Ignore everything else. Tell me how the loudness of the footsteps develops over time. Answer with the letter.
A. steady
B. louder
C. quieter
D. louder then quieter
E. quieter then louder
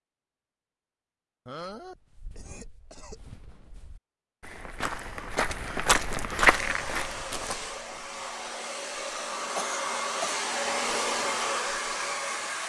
D.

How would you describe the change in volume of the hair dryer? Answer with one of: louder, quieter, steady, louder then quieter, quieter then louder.
louder.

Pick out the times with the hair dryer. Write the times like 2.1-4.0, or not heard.
6.4-12.6.